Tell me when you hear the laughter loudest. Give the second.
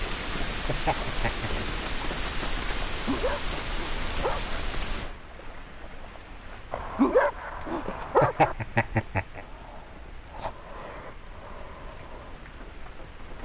8 s.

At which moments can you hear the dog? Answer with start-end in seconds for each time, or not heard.
2.9-4.6, 6.7-8.6.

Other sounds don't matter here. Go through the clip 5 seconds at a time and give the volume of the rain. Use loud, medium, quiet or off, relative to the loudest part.
loud, quiet, medium.